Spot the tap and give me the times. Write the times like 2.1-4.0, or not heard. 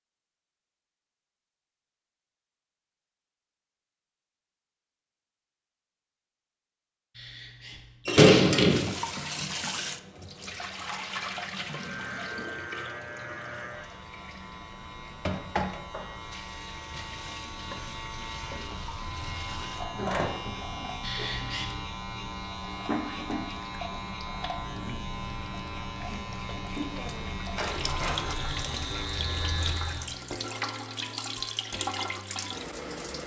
8.7-33.2.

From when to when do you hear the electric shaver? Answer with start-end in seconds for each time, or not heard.
11.8-30.2.